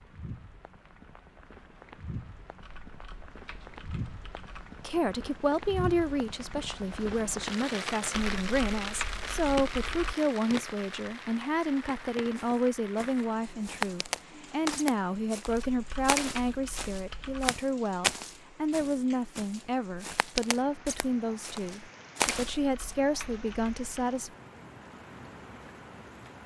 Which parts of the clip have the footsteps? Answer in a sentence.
The footsteps can be heard from 12.3 to 22.9 s.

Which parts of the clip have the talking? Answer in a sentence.
You can hear the talking from 4.8 to 24.3 s.